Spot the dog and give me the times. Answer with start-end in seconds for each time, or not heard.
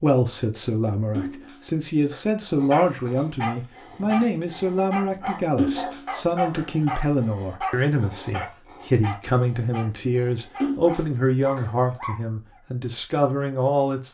2.5-12.2.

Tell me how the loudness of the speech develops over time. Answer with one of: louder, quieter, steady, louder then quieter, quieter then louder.
steady.